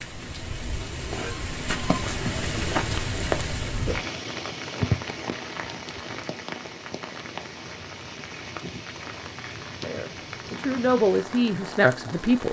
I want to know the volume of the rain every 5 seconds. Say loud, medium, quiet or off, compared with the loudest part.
loud, medium, medium.